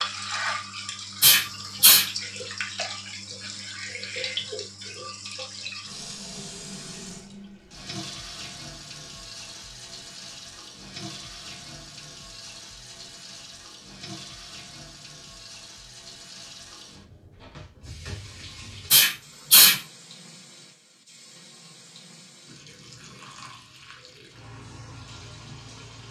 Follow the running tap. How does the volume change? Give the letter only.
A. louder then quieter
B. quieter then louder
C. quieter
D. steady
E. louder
C.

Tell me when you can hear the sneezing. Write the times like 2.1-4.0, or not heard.
1.2-2.0, 18.9-19.8.